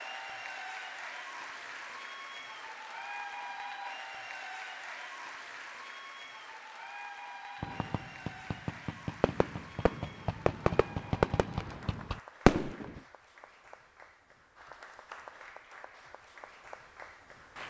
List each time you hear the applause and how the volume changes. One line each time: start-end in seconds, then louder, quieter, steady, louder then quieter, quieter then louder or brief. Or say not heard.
0.0-17.6 quieter.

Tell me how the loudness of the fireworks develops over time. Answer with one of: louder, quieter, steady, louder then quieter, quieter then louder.
louder.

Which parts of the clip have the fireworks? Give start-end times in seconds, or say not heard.
7.6-13.0.